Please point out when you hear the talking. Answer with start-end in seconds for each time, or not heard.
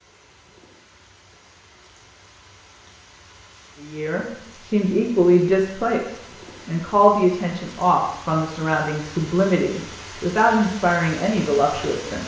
3.8-12.2.